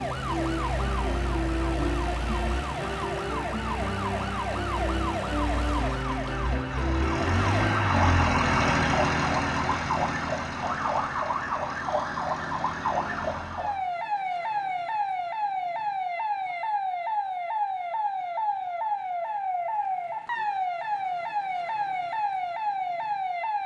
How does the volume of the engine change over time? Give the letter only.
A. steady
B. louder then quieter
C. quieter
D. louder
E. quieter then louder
B.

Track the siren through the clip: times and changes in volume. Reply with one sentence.
The siren can be heard from 0.0 to 23.6 s, at a steady volume.